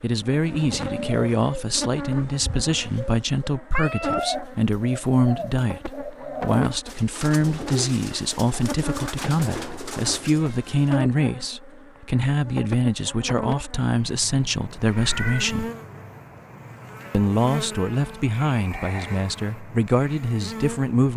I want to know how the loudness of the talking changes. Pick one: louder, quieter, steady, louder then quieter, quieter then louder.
steady.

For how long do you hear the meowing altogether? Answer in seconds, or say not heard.
3 s.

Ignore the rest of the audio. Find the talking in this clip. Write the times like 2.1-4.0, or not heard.
0.0-15.7, 17.1-21.1.